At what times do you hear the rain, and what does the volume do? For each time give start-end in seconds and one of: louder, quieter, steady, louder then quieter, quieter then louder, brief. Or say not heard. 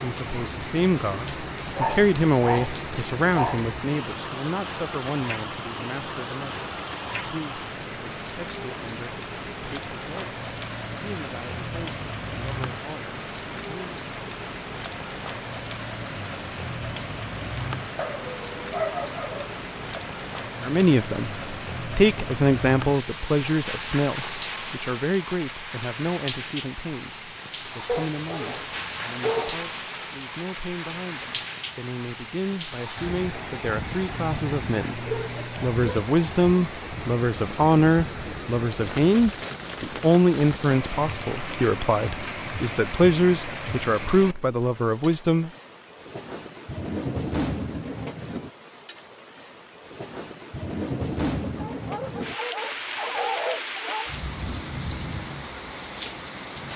0.0-56.7 steady.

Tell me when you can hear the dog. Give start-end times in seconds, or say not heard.
1.8-3.8, 17.9-20.0, 27.9-29.6, 34.1-35.8, 51.4-54.1.